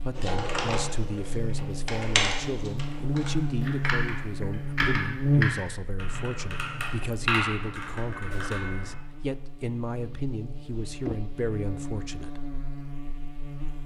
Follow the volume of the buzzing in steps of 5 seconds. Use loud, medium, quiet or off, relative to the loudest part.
loud, loud, medium.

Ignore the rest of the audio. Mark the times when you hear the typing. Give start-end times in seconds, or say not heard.
0.1-8.9.